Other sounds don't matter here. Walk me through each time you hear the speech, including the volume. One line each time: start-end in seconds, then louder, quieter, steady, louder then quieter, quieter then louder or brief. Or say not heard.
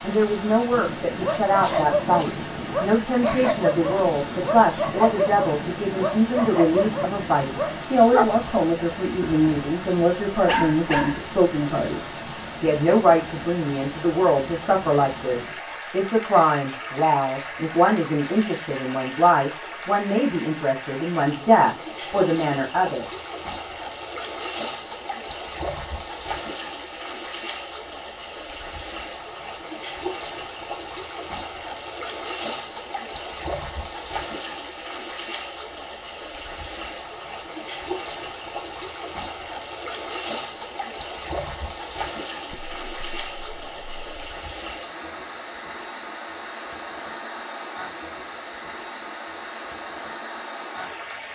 0.0-23.1 steady.